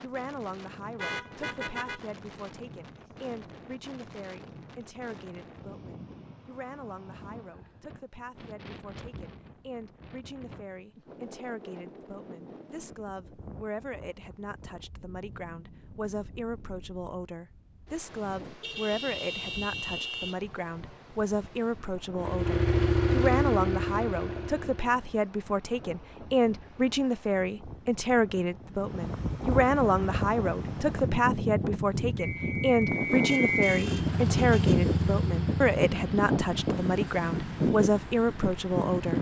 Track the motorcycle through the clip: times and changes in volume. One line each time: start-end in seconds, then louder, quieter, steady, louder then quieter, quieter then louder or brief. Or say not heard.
22.2-25.1 brief
33.7-39.1 quieter.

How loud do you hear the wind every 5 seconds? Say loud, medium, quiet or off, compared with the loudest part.
quiet, quiet, quiet, quiet, quiet, medium, loud, loud.